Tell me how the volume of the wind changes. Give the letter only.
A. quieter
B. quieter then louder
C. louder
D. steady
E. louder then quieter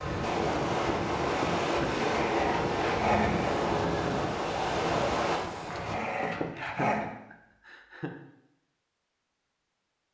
D.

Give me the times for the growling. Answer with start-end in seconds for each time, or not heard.
2.1-3.5, 5.7-7.1.